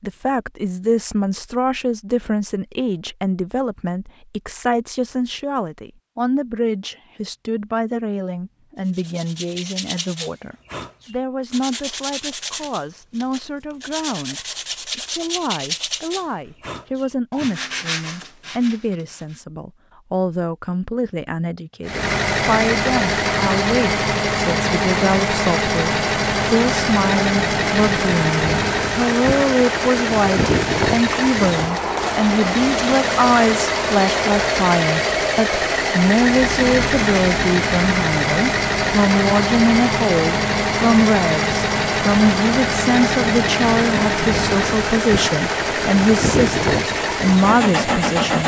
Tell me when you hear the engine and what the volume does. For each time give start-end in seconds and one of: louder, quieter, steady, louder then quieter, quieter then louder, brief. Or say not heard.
21.9-48.4 steady.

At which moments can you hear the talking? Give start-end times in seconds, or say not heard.
0.0-48.4.